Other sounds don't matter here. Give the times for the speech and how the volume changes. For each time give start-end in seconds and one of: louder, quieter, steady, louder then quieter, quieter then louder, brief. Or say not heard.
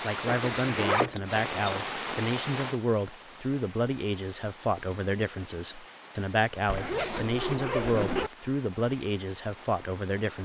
0.0-10.4 steady.